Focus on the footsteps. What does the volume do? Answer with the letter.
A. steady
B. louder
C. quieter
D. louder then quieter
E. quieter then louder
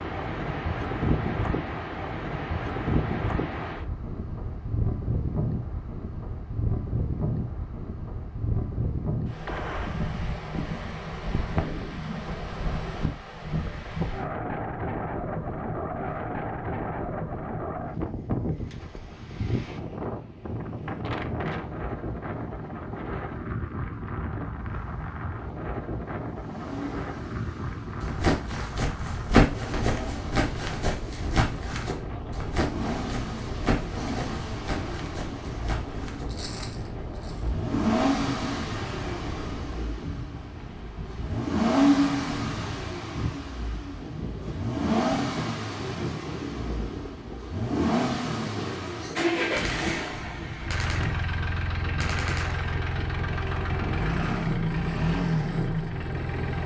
C.